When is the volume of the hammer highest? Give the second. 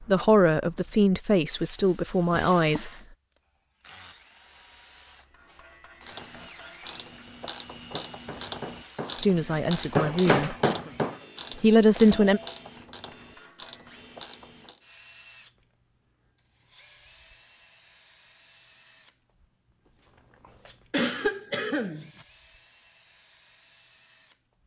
10 s.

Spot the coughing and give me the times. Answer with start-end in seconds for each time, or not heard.
2.3-2.9, 10.2-10.9, 20.9-22.2.